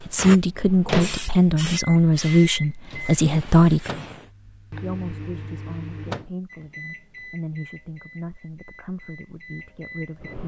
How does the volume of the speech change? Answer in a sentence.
The loudness of the speech goes down.